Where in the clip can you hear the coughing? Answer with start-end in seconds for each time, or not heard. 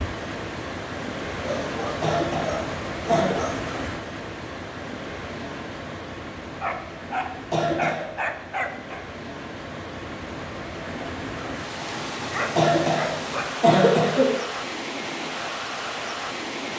1.9-3.4, 7.3-8.2, 12.3-14.3.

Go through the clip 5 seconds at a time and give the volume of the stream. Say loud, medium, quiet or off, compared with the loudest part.
loud, medium, loud, loud.